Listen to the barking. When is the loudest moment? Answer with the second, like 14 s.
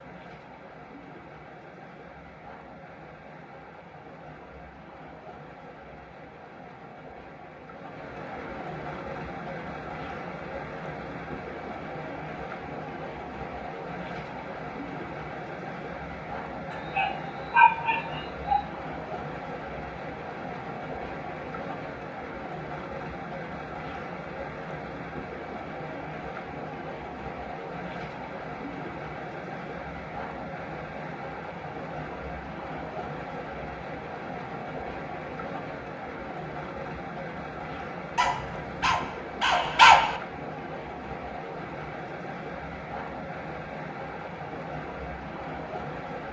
40 s.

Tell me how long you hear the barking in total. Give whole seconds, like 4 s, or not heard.
4 s.